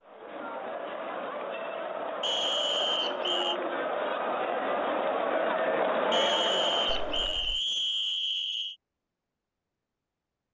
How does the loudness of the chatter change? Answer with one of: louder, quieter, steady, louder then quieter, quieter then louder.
louder.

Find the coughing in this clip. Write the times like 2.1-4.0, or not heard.
not heard.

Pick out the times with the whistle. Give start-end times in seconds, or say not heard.
2.2-3.6, 6.1-8.8.